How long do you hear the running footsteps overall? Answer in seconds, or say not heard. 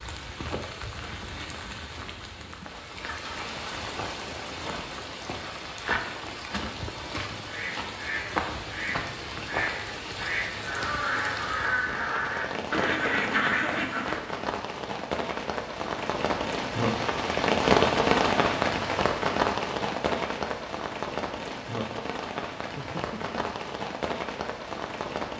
not heard.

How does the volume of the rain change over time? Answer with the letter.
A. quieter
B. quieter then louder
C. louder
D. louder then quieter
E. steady
D.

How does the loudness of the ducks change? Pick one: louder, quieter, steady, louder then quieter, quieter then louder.
louder.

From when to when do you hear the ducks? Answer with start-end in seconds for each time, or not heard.
7.5-14.2.